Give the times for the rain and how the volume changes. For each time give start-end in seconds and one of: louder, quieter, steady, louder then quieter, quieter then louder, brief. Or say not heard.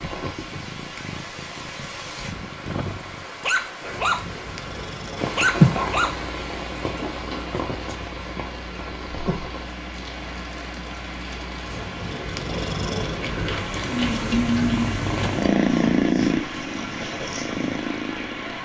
0.0-18.6 louder then quieter.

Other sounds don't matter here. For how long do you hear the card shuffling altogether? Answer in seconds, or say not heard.
2 s.